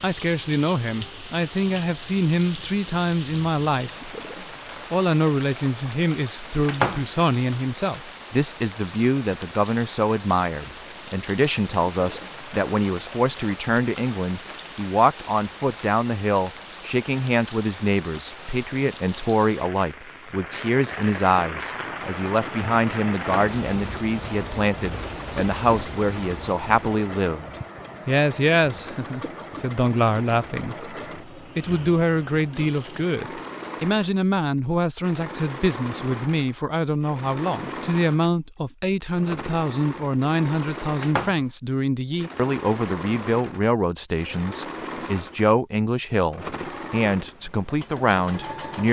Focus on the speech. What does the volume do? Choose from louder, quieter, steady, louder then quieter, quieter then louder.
steady.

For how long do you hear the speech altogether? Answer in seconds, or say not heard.
47 s.